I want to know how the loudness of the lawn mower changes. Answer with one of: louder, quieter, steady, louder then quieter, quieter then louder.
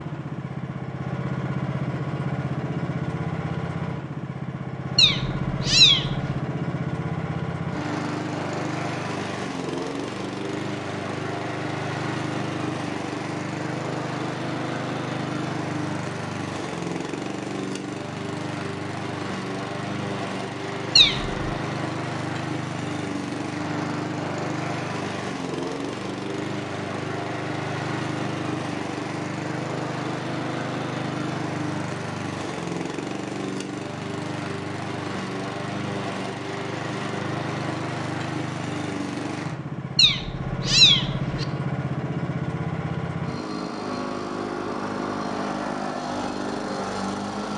steady.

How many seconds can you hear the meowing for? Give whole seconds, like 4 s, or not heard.
3 s.